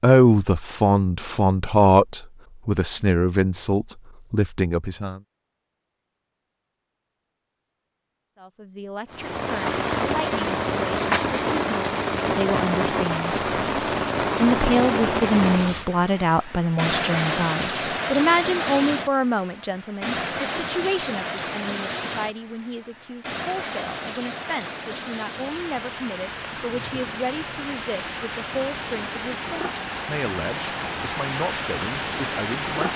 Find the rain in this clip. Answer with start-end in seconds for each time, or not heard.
9.1-32.9.